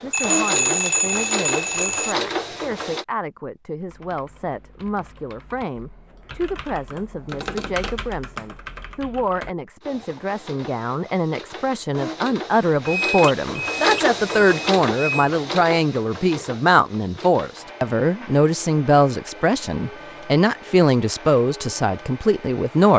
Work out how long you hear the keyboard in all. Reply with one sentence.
You can hear the keyboard for 7 seconds altogether.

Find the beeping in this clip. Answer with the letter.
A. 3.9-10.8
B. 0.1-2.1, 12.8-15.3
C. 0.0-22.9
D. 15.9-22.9
B.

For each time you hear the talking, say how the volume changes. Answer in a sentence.
You can hear the talking from 0.0 to 22.9 s, getting louder.